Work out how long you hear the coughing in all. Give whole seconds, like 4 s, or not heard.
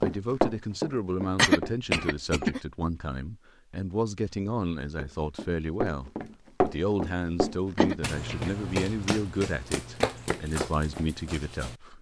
2 s.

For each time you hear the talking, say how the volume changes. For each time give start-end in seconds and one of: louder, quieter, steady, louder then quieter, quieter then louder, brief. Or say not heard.
0.0-11.9 steady.